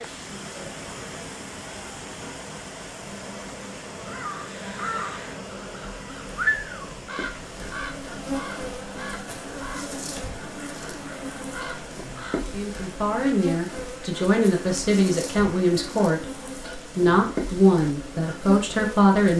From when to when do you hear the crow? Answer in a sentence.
The crow can be heard from 4.0 to 12.5 s.